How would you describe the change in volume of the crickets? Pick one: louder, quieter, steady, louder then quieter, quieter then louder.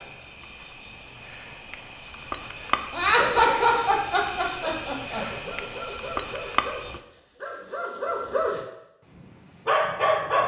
louder.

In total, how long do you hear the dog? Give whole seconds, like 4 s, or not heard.
5 s.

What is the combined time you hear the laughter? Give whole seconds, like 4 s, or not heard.
2 s.